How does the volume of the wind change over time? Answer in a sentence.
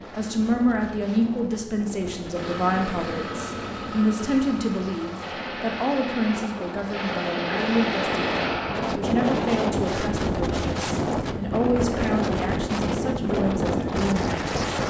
The loudness of the wind goes up.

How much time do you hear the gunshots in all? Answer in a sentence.
You can hear the gunshots for 4 seconds altogether.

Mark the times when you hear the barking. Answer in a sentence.
You can't hear the barking here.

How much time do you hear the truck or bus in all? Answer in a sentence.
The truck or bus can be heard for 3 seconds in total.